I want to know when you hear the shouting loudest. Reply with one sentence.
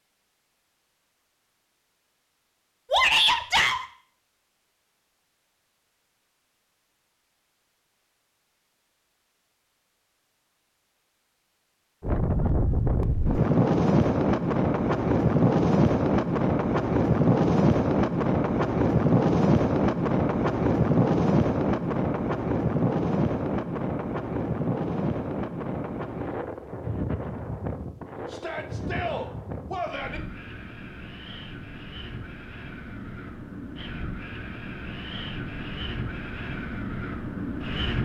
The volume of the shouting peaks at 3 seconds.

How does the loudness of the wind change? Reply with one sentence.
The loudness of the wind goes down.